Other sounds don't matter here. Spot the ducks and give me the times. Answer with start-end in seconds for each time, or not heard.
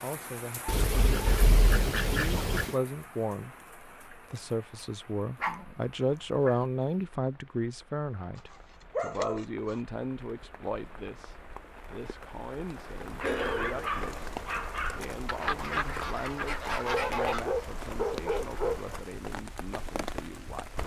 0.7-2.8, 15.2-17.4.